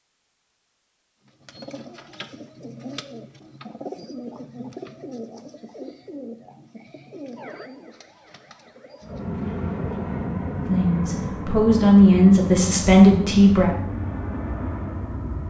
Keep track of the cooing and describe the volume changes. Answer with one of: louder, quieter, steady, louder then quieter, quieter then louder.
quieter.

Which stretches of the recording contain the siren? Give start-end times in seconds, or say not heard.
7.3-9.1.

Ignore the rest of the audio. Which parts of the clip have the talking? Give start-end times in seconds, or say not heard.
10.7-13.8.